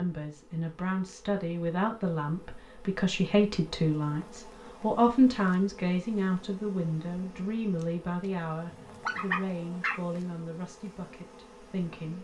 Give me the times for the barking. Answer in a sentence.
The barking can be heard from 8.7 to 10.0 s.